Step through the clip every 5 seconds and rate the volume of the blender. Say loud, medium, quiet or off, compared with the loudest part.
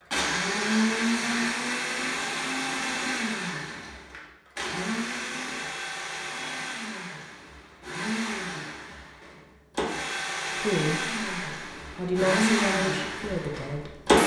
loud, medium, loud.